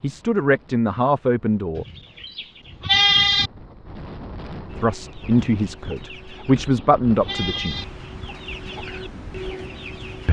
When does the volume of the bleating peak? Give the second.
3 s.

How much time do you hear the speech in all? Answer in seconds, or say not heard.
5 s.